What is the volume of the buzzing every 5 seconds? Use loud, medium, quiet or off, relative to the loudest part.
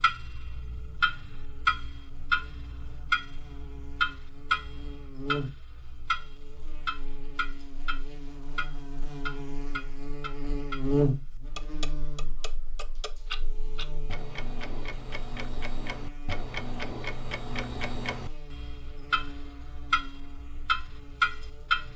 quiet, medium, loud, quiet, quiet.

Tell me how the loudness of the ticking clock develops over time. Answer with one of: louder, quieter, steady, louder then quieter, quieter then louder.
quieter then louder.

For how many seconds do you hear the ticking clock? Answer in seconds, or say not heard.
22 s.